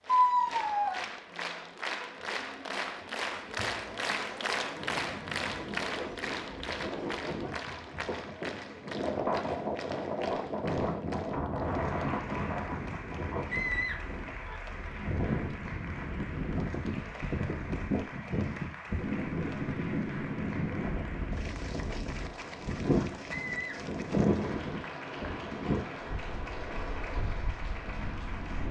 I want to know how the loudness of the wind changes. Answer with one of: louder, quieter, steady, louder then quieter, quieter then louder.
steady.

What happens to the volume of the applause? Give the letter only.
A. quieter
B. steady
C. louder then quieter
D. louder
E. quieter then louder
A.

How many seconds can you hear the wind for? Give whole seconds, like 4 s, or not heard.
24 s.